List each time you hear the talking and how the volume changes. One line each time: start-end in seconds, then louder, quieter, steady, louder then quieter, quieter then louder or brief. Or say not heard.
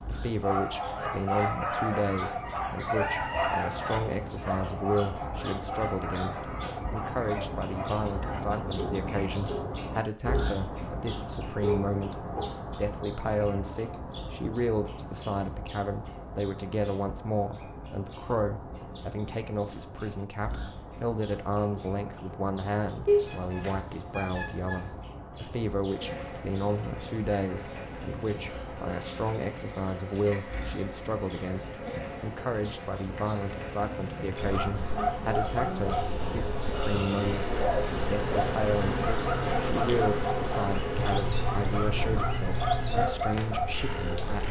0.1-44.4 steady.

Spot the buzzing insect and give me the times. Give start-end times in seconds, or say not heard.
25.8-44.4.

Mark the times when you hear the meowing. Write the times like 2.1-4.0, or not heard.
3.0-4.2, 23.1-24.9, 41.0-43.0.